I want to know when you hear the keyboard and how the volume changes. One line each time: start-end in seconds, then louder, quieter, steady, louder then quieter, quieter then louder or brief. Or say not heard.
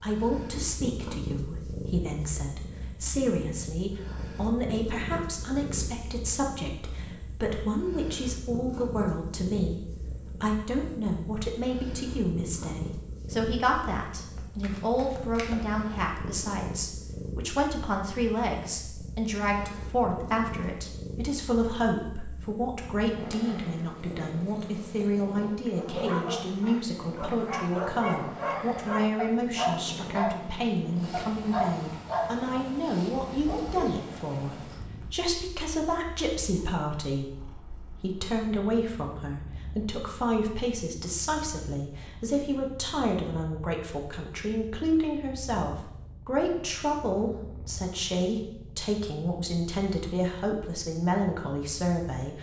not heard.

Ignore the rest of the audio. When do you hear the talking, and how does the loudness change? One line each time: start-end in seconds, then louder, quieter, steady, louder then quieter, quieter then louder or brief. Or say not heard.
0.0-52.3 steady.